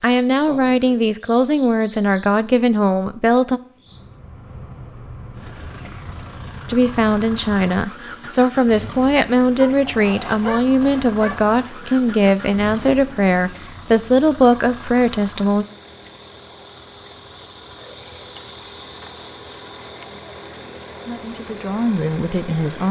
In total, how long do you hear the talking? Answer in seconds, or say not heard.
14 s.